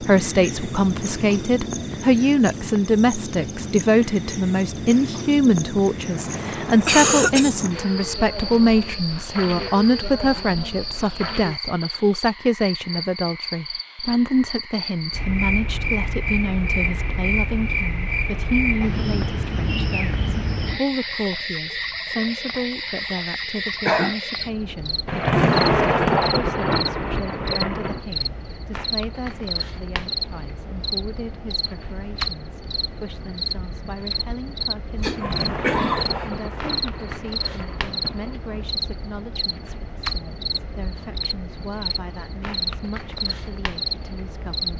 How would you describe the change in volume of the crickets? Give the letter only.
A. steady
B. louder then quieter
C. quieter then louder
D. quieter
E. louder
A.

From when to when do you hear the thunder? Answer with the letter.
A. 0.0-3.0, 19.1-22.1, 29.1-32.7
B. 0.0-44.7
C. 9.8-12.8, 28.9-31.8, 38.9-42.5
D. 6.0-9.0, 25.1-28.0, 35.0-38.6
D.